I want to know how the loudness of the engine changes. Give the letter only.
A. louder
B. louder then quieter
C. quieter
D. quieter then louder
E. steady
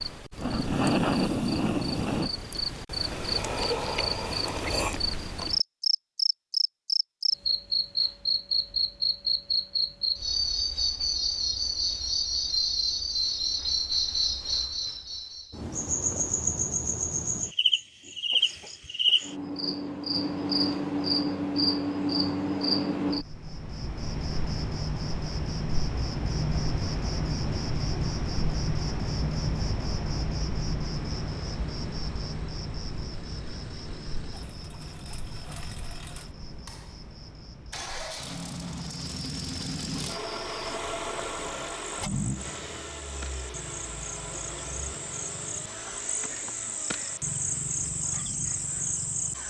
B.